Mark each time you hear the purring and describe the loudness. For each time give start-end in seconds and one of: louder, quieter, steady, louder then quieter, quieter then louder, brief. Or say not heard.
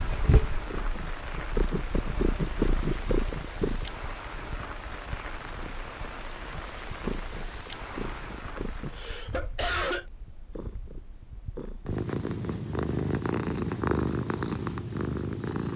0.0-15.7 quieter then louder.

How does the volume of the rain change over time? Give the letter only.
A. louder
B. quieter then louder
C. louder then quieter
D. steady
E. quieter
D.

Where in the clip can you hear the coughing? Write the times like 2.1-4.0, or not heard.
8.6-10.1.